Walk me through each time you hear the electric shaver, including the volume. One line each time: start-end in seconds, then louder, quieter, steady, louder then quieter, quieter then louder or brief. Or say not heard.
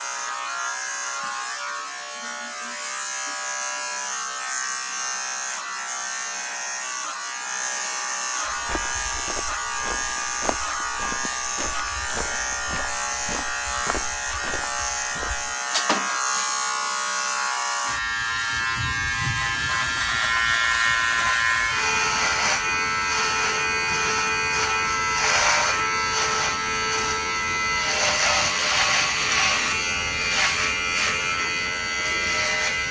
0.0-32.8 louder.